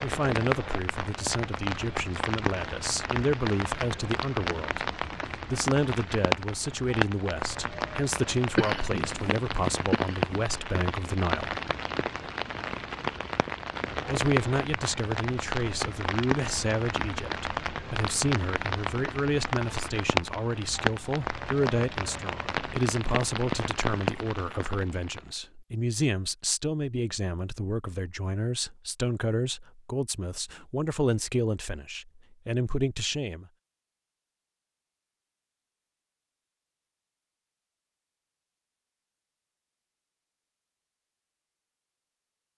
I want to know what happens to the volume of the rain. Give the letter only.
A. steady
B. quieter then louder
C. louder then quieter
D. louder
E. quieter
A.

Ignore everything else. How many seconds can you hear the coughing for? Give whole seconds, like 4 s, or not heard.
2 s.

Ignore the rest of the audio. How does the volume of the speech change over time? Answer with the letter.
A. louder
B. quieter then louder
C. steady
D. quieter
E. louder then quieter
C.